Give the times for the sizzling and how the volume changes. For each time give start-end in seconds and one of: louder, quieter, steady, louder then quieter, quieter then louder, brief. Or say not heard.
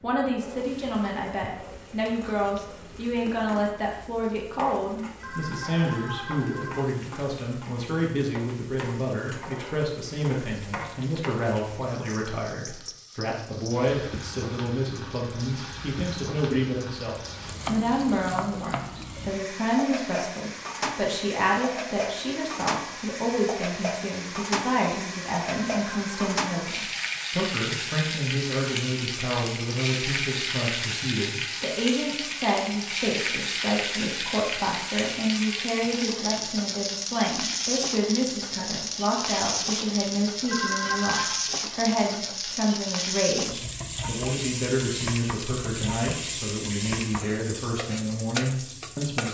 0.0-49.2 louder.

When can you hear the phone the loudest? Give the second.
41 s.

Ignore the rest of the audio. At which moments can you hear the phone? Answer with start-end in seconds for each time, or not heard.
5.2-6.8, 25.7-26.2, 40.5-41.3.